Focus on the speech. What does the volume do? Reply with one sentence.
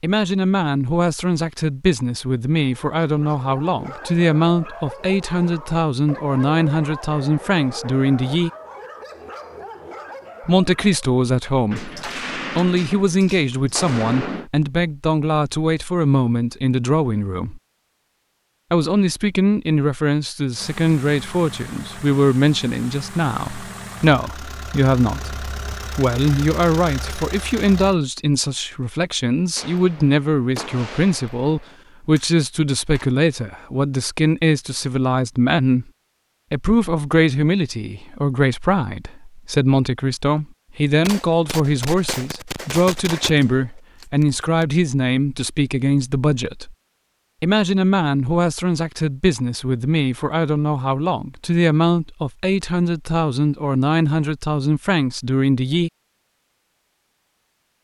The volume of the speech stays about the same.